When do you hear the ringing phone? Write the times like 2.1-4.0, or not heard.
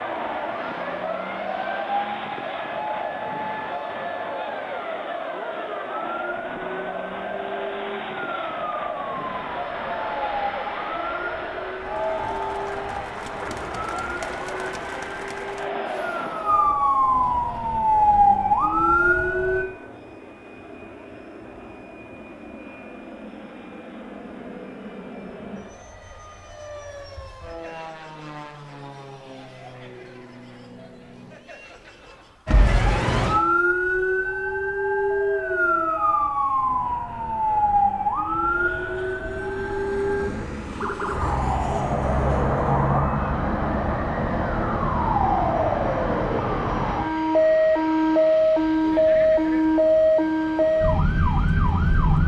not heard.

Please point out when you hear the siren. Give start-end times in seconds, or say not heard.
0.0-19.6, 32.5-52.2.